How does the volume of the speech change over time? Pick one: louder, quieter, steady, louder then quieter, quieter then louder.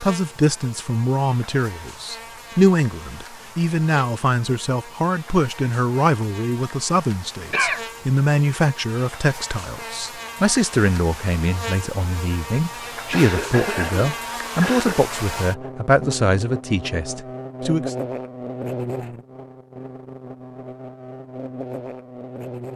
steady.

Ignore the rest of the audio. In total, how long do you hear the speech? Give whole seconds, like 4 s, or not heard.
18 s.